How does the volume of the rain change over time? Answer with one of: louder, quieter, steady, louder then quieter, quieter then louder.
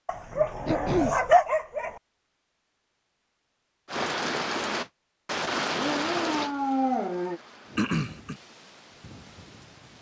quieter.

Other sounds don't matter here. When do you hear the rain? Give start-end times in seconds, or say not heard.
3.9-9.9.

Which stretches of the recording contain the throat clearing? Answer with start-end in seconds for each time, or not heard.
0.7-1.2, 7.8-8.3.